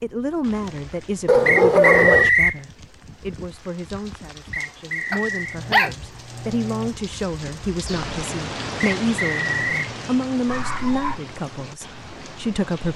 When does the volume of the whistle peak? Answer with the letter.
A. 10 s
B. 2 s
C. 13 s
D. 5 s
B.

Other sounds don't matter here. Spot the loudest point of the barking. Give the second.
2 s.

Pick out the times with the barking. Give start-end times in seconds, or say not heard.
1.2-2.3, 5.1-6.9, 10.4-11.2.